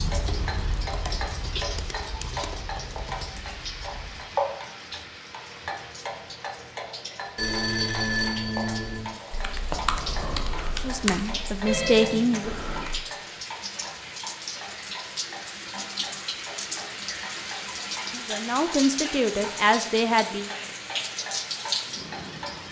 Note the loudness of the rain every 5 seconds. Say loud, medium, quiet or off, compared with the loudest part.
medium, medium, medium, loud, loud.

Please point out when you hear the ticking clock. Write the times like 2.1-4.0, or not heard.
0.0-22.6.